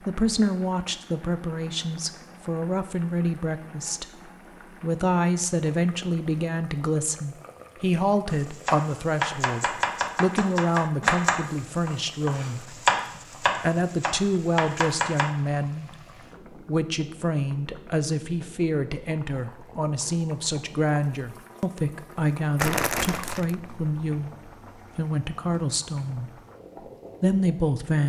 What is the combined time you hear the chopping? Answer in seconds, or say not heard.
7 s.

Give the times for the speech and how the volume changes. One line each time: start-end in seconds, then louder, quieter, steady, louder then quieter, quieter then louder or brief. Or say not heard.
0.1-12.8 steady
13.6-26.3 steady
27.2-28.0 brief.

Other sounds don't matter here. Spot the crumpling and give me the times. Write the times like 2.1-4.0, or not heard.
22.6-23.8.